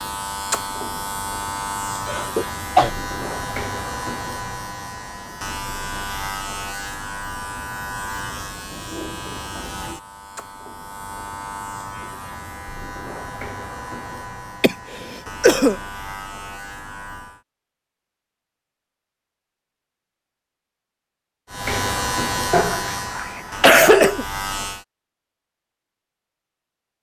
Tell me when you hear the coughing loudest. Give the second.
24 s.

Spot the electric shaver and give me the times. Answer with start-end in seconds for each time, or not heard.
0.0-17.4, 21.5-24.9.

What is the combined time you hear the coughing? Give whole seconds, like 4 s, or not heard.
4 s.